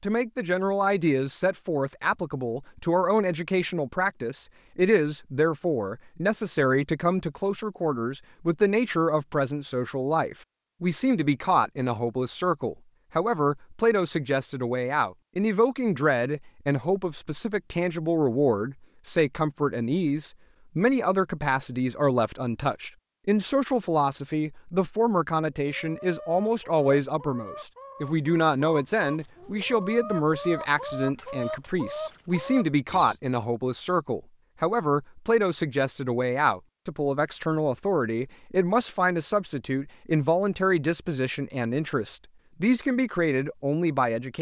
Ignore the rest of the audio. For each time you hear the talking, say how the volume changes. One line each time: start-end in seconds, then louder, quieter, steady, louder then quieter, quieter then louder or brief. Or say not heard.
0.0-44.3 steady.